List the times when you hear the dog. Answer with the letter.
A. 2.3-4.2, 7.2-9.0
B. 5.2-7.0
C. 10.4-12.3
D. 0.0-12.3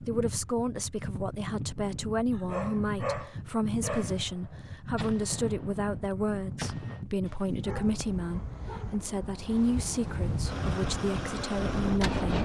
A.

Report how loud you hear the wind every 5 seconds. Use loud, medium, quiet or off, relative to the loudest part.
medium, medium, loud.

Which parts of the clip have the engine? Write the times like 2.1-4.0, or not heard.
10.4-12.3.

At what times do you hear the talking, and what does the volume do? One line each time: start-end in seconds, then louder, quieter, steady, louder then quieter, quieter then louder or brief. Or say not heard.
0.0-12.3 steady.